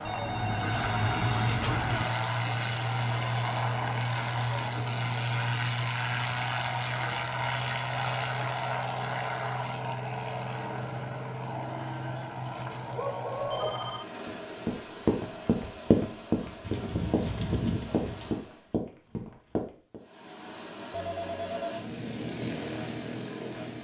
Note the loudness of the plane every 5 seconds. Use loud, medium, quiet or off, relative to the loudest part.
loud, loud, medium, quiet, medium.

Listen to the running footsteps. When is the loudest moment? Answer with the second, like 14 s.
16 s.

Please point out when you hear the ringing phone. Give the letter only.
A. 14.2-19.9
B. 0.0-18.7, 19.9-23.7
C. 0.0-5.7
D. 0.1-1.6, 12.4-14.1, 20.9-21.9
D.